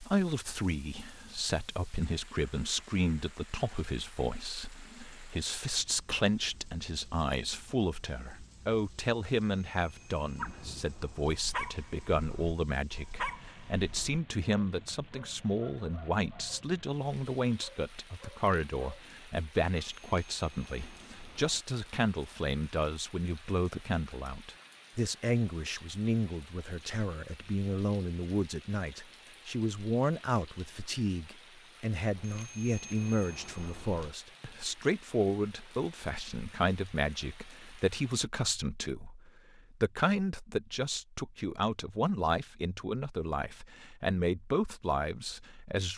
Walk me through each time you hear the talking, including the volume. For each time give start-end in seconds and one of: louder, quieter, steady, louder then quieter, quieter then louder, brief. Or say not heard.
0.0-45.9 steady.